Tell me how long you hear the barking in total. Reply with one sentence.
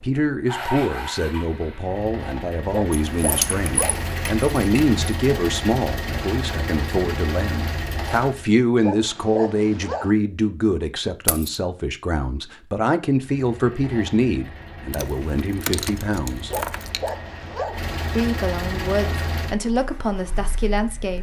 The barking can be heard for 4 seconds in total.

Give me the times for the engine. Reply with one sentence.
You can hear the engine from 0.0 to 8.5 s and from 13.2 to 21.1 s.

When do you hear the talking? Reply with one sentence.
The talking can be heard from 0.0 to 16.6 s and from 18.1 to 21.1 s.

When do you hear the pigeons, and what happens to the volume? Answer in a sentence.
You can't hear the pigeons here.